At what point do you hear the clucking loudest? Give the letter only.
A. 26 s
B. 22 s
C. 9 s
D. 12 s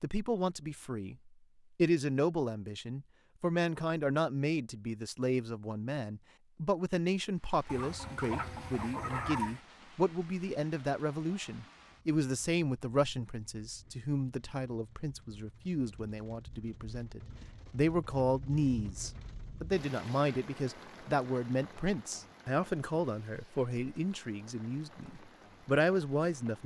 C.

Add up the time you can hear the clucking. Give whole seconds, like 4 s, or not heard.
2 s.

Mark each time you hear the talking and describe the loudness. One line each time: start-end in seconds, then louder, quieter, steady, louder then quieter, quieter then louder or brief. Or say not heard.
0.0-26.6 steady.